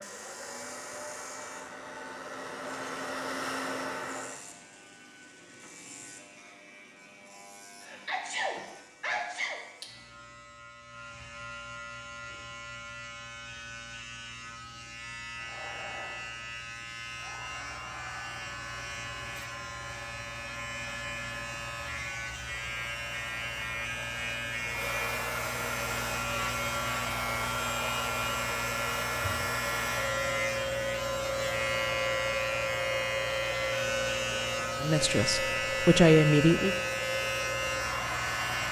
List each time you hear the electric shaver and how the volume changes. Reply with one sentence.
The electric shaver can be heard from 0.0 to 38.6 s, getting louder.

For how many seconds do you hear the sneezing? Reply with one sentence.
The sneezing can be heard for 2 seconds in total.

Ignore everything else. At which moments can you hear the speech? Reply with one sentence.
You can hear the speech from 34.8 to 36.8 s.